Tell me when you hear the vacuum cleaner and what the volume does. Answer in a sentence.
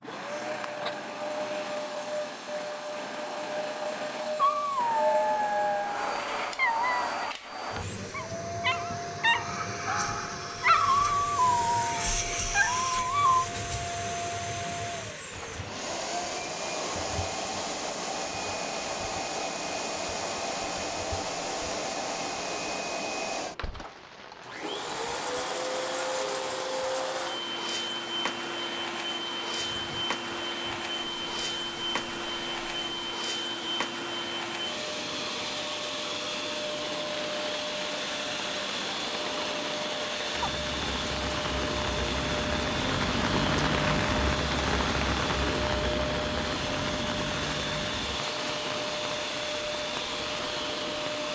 You can hear the vacuum cleaner from 0.0 to 51.3 s, at a steady volume.